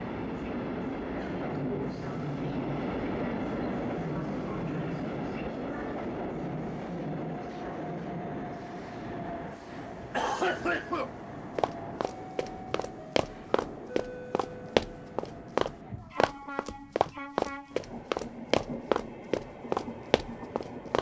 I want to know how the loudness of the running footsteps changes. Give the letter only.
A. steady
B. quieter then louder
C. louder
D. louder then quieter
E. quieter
C.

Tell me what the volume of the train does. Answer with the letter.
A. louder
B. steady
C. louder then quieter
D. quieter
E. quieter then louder
D.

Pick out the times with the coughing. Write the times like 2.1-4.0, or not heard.
9.6-11.1.